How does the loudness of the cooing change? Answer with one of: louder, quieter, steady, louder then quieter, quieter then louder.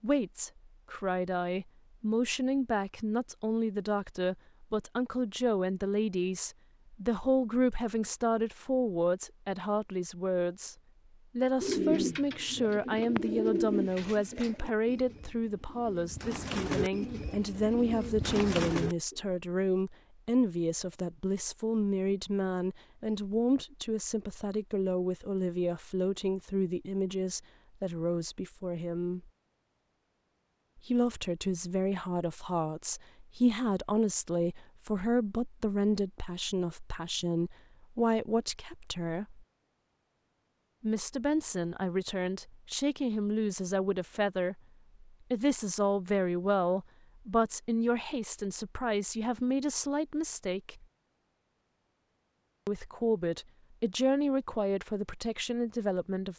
quieter then louder.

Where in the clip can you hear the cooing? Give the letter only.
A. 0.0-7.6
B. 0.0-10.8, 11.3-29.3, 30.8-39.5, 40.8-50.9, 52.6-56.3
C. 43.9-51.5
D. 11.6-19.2
D.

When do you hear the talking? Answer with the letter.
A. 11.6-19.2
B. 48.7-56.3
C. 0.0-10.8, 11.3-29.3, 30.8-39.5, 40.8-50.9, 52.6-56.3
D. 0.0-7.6
C.